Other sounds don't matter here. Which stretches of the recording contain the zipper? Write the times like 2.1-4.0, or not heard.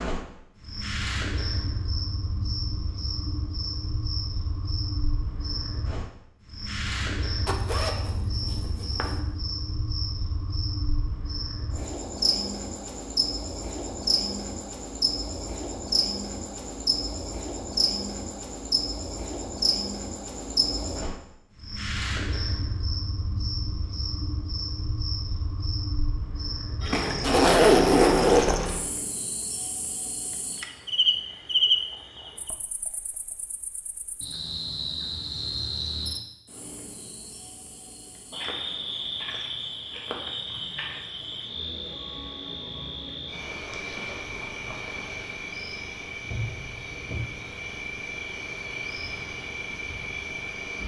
7.5-9.2, 27.2-28.6.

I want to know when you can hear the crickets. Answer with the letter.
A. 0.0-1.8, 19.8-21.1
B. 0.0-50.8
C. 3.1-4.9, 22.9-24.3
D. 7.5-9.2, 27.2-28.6
B.